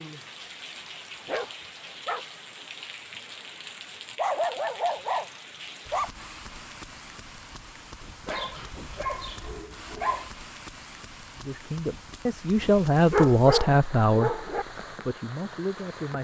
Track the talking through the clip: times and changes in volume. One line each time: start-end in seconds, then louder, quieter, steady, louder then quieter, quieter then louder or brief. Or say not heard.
11.3-16.2 louder then quieter.